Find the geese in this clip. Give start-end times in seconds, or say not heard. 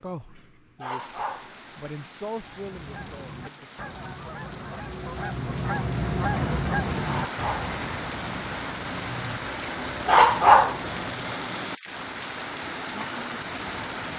2.4-11.4.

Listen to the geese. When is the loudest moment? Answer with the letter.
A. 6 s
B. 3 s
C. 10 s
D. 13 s
A.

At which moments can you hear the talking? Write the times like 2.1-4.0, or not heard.
0.0-3.8.